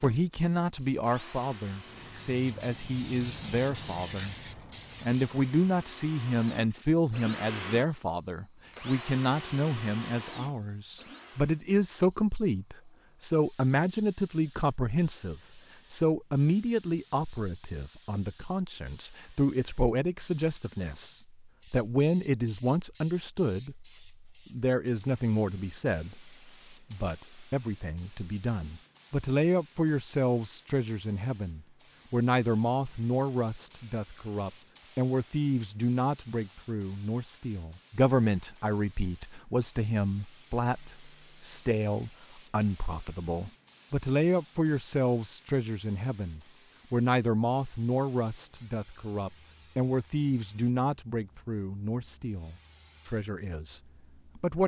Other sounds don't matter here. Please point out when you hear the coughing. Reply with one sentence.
The coughing can't be heard in this clip.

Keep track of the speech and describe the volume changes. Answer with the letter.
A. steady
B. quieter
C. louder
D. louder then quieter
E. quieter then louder
A.